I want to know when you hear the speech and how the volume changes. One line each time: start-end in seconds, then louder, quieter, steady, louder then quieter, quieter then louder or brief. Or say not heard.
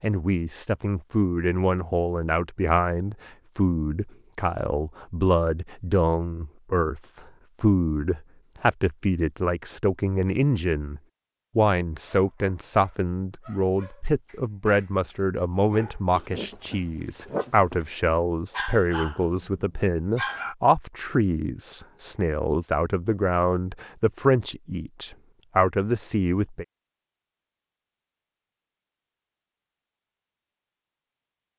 0.0-26.6 steady.